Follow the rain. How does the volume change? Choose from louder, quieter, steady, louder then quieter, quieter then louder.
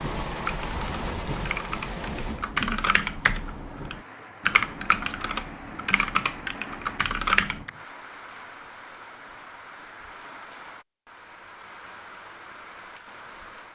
quieter.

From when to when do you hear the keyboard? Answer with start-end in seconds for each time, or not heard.
0.3-7.7.